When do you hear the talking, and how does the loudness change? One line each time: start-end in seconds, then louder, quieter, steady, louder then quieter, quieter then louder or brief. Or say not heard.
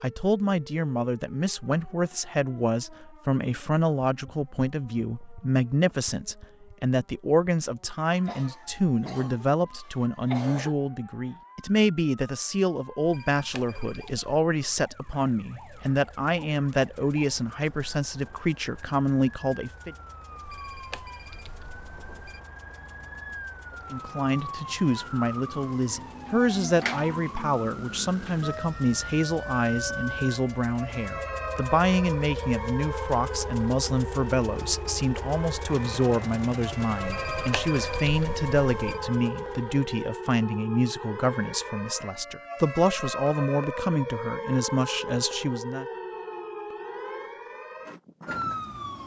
0.0-19.9 steady
23.9-45.9 steady.